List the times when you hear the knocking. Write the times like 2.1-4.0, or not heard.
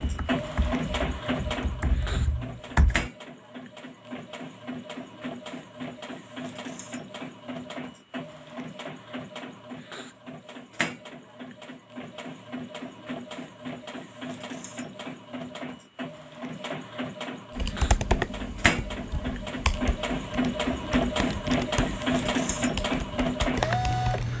not heard.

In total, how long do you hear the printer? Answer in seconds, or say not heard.
24 s.